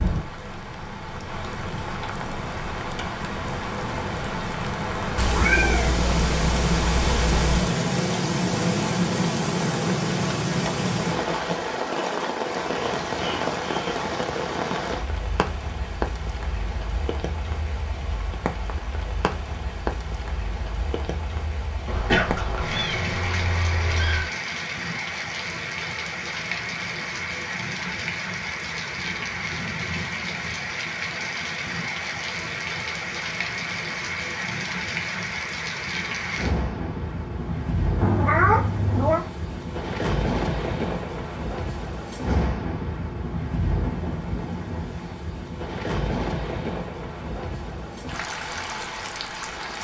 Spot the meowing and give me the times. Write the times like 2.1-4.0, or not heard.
5.2-7.7, 21.9-24.3, 38.0-39.2.